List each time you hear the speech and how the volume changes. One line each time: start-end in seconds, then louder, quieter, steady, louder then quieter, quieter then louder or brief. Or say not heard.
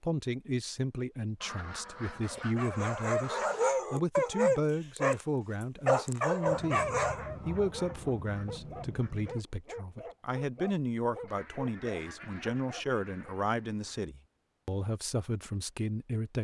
0.0-16.4 steady.